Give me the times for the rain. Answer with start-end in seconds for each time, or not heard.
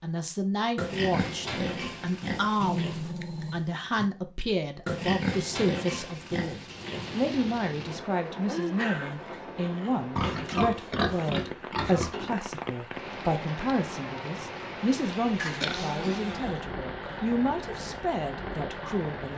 6.5-19.3.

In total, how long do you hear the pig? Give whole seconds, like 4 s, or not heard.
8 s.